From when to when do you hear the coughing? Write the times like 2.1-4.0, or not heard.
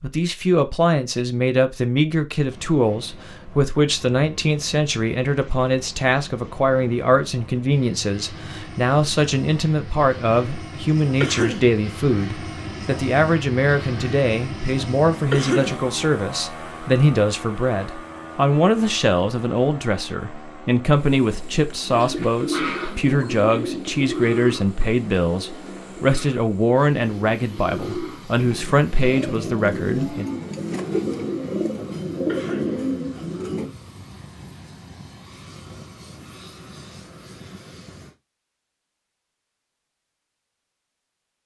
11.2-11.7, 15.3-15.8, 32.2-32.8.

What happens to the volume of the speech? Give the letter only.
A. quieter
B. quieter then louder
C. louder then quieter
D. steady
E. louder
D.